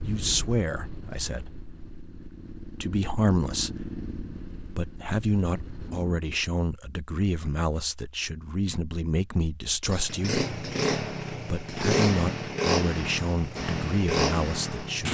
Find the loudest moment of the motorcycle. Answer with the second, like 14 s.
12 s.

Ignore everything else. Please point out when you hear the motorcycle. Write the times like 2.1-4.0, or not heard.
0.0-6.2, 9.8-15.0.